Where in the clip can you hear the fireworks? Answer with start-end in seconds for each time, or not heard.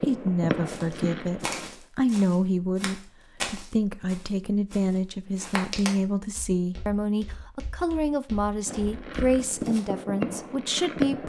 0.0-1.7, 8.7-11.2.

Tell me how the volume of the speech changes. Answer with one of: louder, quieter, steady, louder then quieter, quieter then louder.
steady.